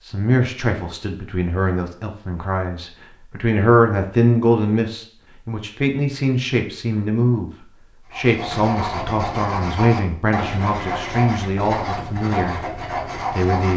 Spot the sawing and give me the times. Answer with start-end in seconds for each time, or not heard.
8.1-13.7.